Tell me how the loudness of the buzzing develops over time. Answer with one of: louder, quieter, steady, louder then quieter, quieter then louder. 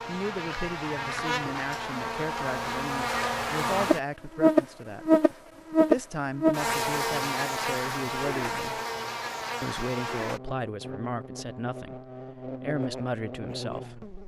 louder then quieter.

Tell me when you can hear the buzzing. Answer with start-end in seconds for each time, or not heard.
0.0-14.2.